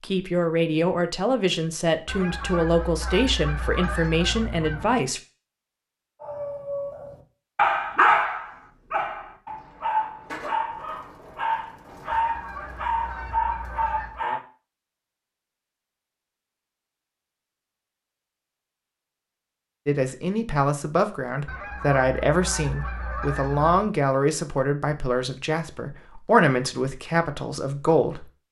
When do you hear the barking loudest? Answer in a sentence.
The loudest moment of the barking is at 8 seconds.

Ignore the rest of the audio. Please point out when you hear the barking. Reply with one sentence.
The barking can be heard from 6.2 to 14.4 s.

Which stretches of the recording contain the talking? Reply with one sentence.
The talking can be heard from 0.0 to 5.2 s and from 19.9 to 28.2 s.